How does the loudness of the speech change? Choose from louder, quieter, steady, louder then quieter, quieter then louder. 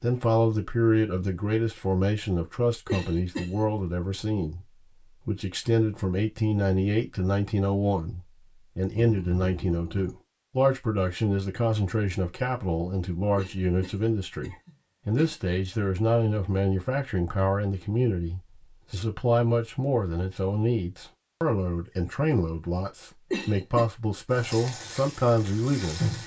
steady.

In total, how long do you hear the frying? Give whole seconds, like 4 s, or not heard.
2 s.